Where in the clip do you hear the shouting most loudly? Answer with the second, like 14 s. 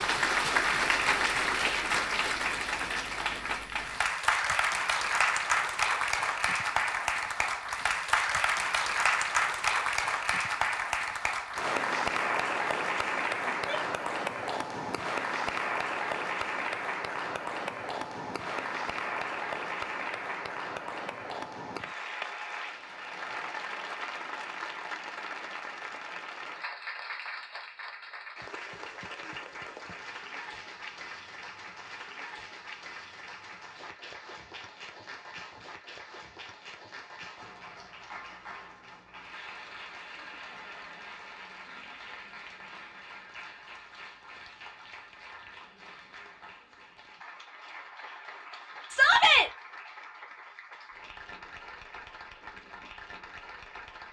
49 s.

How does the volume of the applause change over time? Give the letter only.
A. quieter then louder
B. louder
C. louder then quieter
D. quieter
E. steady
D.